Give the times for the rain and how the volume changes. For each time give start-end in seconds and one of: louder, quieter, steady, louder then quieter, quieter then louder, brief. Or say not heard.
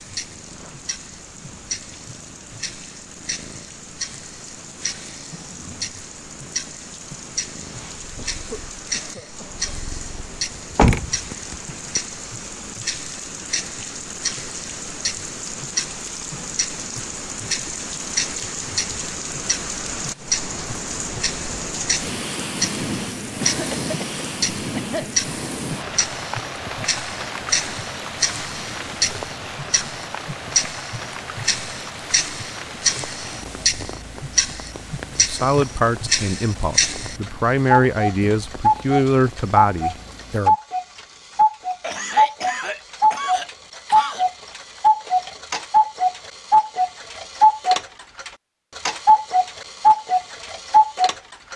0.0-40.4 louder then quieter.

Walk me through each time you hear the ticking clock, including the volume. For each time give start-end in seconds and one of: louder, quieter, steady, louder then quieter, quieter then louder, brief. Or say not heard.
0.0-51.5 louder.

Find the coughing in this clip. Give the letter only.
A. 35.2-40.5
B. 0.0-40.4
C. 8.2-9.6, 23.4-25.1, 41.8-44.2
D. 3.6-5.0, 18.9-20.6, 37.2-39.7
C.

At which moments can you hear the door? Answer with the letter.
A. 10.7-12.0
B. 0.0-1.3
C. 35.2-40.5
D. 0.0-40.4
A.